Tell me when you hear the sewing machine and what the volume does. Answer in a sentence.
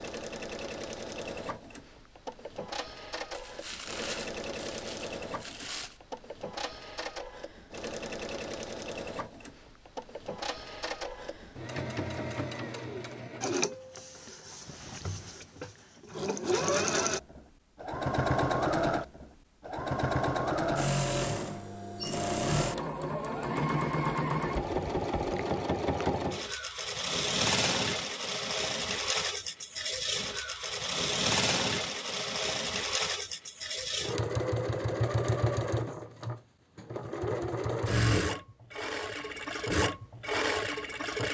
The sewing machine can be heard from 0.0 to 41.2 s, getting louder.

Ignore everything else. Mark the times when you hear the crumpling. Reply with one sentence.
The crumpling can be heard from 3.3 to 6.0 s.